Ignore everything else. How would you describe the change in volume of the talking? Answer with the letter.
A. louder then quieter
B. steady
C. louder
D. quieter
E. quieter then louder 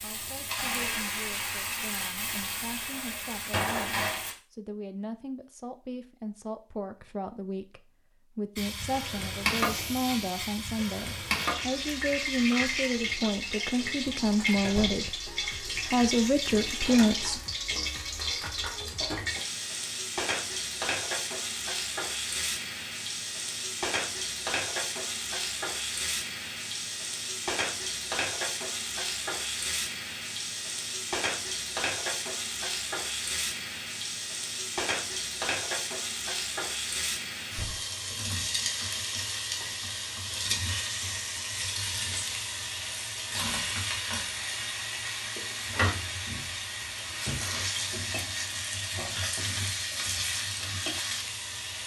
C.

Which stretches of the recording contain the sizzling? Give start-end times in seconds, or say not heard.
0.0-4.3, 8.6-51.8.